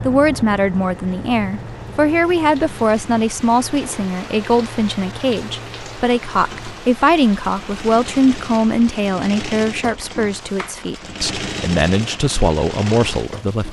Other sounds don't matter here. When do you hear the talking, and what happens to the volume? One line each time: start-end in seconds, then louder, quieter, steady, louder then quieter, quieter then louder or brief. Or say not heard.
0.0-13.6 steady.